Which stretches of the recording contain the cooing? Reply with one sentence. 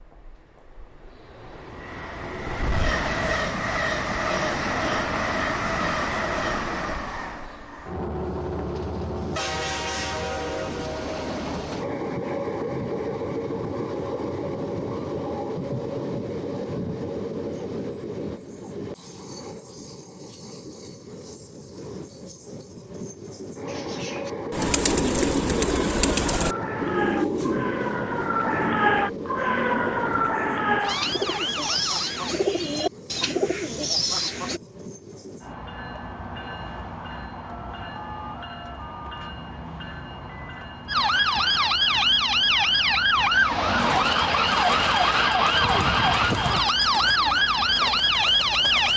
You can hear the cooing from 23.6 to 34.6 s and from 43.9 to 48.9 s.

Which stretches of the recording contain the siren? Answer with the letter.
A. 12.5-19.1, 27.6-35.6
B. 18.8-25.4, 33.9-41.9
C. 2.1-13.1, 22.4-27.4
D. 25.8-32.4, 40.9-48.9
D.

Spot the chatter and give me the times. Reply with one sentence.
You can't hear the chatter here.